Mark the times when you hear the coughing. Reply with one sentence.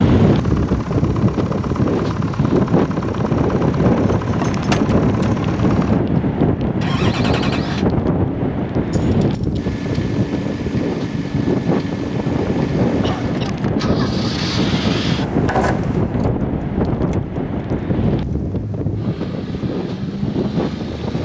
You can hear the coughing from 13.0 to 13.7 s.